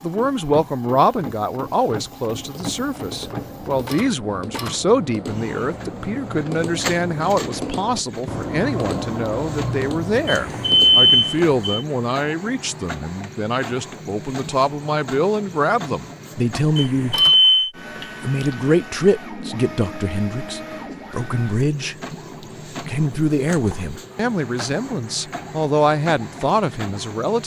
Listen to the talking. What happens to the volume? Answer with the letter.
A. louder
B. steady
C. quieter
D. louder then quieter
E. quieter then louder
B.